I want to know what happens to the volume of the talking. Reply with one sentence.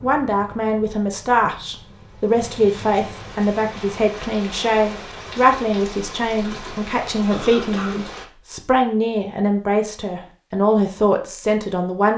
The volume of the talking stays about the same.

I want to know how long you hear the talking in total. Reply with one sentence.
You can hear the talking for 12 seconds altogether.